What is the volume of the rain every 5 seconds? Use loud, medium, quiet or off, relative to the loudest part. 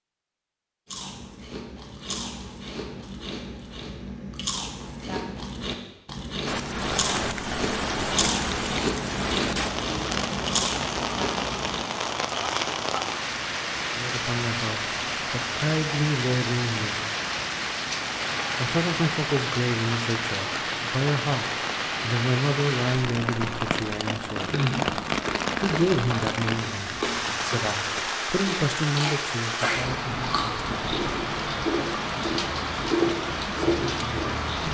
off, loud, loud, loud, loud, loud, loud.